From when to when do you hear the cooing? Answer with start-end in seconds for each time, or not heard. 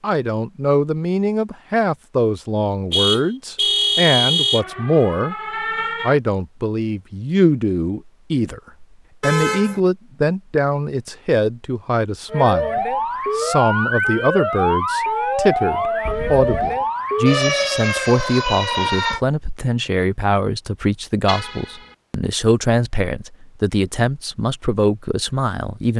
not heard.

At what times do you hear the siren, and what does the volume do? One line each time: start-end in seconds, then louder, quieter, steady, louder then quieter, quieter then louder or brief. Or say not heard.
4.5-6.2 brief
12.3-19.2 steady.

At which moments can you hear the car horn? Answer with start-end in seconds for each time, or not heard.
2.9-4.7, 9.2-9.8, 21.2-21.9.